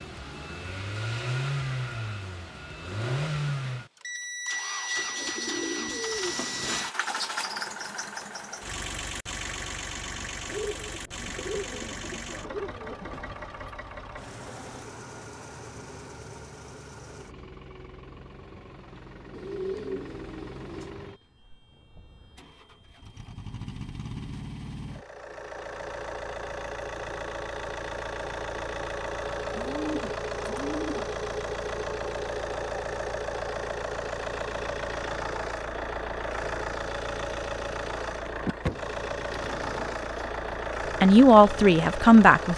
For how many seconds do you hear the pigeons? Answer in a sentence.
You can hear the pigeons for 10 seconds altogether.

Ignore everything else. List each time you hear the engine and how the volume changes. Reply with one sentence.
The engine can be heard from 0.0 to 42.5 s, getting quieter then louder.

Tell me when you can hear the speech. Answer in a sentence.
You can hear the speech from 41.0 to 42.5 s.